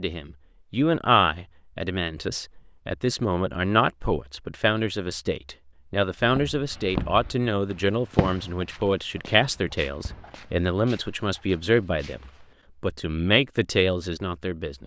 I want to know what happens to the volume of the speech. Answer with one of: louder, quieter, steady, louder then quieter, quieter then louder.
steady.